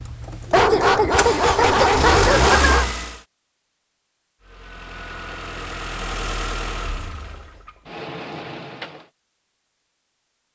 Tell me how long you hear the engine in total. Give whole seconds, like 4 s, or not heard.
8 s.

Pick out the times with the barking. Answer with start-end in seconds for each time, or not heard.
0.5-2.9.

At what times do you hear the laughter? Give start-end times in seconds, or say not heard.
not heard.